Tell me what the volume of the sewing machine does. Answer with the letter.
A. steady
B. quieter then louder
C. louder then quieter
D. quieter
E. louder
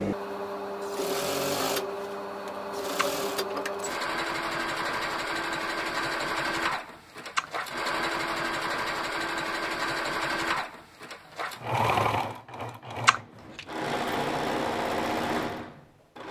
A.